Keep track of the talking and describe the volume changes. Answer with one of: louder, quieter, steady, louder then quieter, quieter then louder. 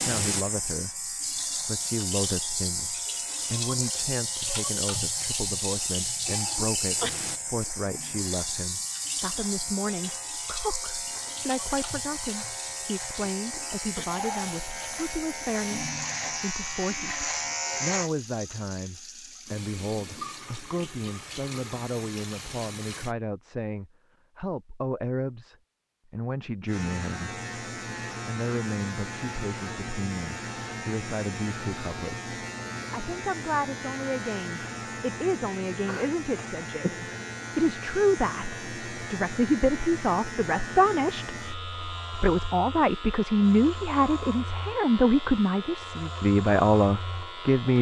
louder.